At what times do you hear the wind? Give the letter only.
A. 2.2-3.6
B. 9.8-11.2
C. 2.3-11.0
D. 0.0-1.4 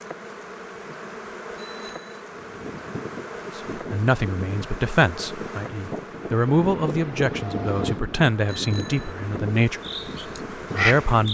C.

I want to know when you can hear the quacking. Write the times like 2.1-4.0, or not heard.
9.8-11.2.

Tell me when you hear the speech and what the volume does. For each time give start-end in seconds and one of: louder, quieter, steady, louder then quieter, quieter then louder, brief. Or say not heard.
3.5-11.2 steady.